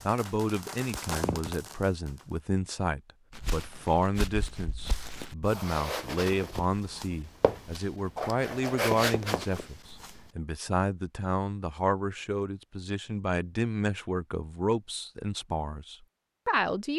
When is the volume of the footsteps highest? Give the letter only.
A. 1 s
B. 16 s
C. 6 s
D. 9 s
D.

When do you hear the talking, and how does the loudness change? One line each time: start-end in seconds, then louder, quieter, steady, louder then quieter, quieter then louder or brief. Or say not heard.
0.1-16.9 steady.